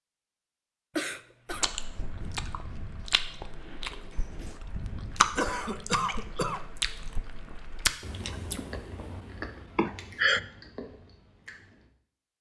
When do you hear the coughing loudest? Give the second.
10 s.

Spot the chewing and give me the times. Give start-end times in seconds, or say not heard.
1.5-11.9.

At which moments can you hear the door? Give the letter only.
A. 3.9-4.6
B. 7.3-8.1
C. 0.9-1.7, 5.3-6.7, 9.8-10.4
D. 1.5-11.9
A.